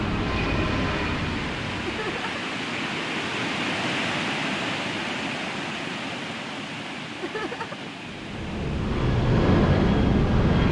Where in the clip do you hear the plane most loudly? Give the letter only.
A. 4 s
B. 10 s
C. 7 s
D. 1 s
B.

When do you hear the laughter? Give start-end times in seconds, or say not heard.
1.9-2.3, 7.2-7.9.